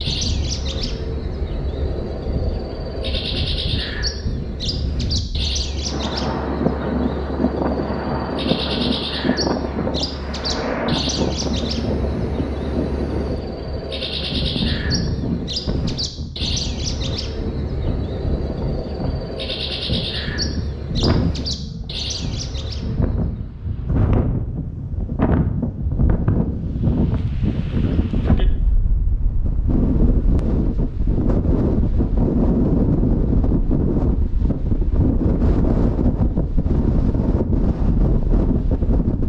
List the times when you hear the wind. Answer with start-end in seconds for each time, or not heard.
0.0-39.2.